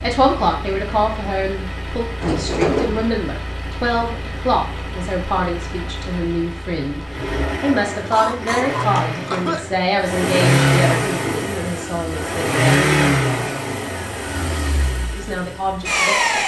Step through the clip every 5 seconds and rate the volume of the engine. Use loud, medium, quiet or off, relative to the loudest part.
quiet, medium, loud, loud.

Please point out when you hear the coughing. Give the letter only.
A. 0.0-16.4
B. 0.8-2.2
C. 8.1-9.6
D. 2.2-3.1
C.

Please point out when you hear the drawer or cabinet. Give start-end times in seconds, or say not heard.
2.2-3.1.